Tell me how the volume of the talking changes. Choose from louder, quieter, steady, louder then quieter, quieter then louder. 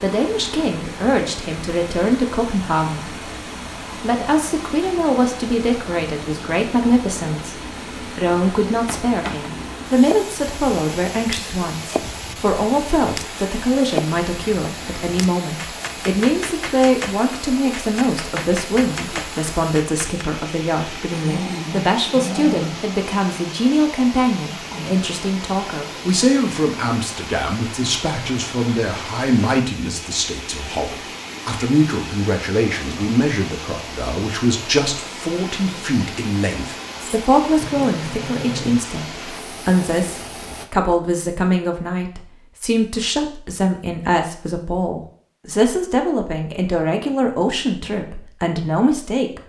steady.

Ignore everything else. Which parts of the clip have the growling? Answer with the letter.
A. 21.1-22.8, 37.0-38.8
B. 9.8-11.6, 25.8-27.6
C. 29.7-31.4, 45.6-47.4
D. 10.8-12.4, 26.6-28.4
A.